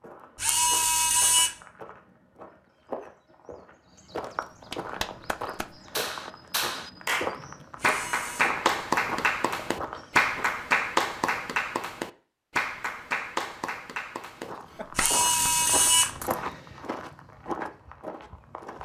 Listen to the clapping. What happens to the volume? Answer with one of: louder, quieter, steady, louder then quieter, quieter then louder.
louder then quieter.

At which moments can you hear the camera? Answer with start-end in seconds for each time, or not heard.
0.3-1.5, 7.8-8.6, 14.9-16.4.